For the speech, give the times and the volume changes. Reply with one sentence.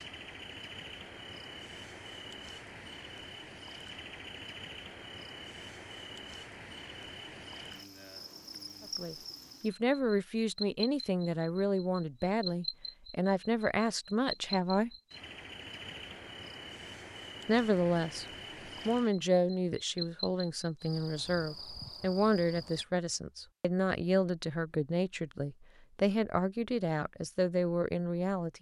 The speech can be heard from 8.9 to 14.9 s, at a steady volume; briefly from 17.4 to 18.2 s; and from 18.9 to 28.5 s, at a steady volume.